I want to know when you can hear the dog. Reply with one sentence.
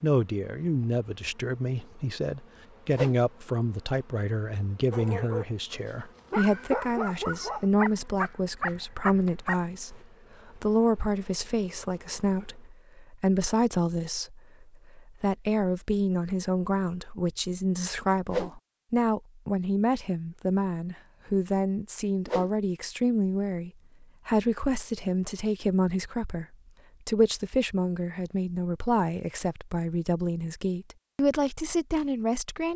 The dog can be heard from 4.9 to 10.0 s.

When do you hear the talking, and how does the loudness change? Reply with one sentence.
You can hear the talking from 0.0 to 32.7 s, at a steady volume.